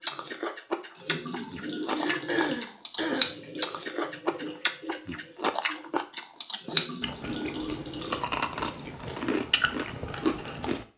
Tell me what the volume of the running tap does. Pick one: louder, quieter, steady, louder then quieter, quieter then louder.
quieter then louder.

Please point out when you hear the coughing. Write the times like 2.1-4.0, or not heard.
1.9-3.4.